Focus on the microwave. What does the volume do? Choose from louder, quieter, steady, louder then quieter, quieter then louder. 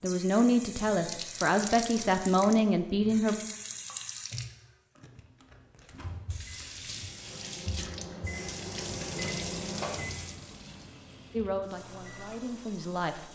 louder then quieter.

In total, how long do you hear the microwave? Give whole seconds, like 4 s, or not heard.
7 s.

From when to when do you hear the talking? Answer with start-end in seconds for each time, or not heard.
0.0-3.4, 11.3-13.2.